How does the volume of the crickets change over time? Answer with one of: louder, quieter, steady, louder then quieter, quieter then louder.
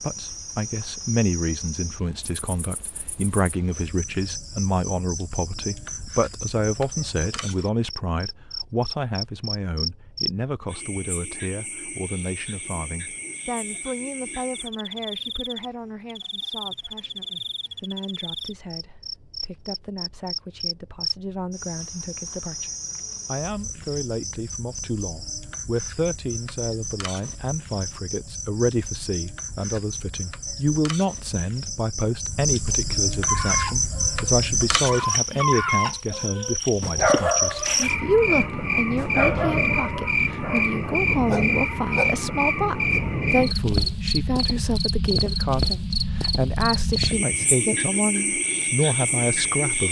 louder.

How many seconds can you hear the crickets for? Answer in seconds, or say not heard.
50 s.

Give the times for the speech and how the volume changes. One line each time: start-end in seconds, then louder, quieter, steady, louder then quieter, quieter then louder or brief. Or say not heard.
0.0-49.8 quieter then louder.